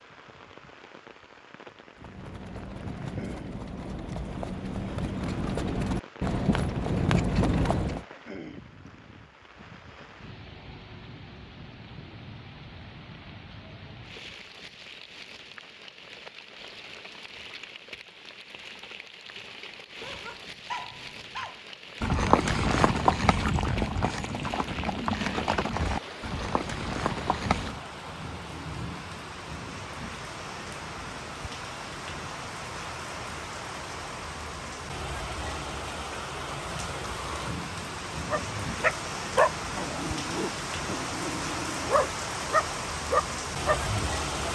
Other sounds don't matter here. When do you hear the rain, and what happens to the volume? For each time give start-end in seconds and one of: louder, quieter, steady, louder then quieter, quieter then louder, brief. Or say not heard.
0.0-44.4 louder.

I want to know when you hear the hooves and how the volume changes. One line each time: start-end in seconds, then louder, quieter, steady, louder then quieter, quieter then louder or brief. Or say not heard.
1.9-8.1 louder
22.0-27.8 quieter.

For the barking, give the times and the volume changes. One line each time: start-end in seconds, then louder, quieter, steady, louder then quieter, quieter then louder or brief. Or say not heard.
20.0-21.6 brief
38.3-44.4 quieter then louder.